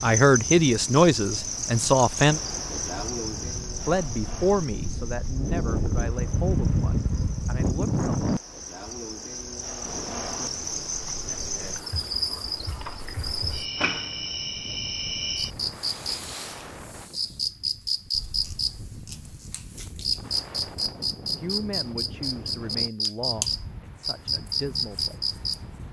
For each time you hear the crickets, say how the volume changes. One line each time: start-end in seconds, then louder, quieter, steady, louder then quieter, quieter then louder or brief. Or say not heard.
0.0-25.6 quieter then louder.